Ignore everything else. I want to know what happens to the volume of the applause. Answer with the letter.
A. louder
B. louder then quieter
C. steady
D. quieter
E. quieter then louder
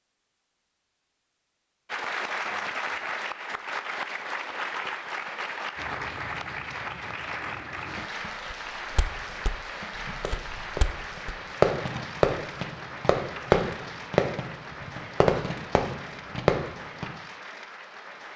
D.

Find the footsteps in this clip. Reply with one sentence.
You can hear the footsteps from 5.8 to 11.3 s.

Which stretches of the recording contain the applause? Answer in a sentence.
The applause can be heard from 1.9 to 18.3 s.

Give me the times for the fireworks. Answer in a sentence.
The fireworks can be heard from 9.8 to 17.1 s.